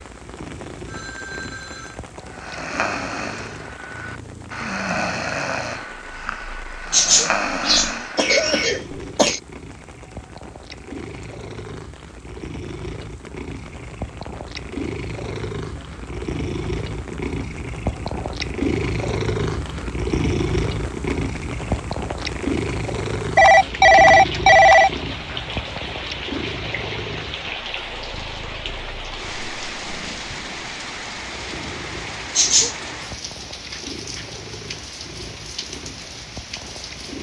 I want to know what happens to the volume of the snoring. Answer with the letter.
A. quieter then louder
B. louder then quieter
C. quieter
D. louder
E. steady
E.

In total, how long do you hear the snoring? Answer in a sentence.
You can hear the snoring for 7 seconds altogether.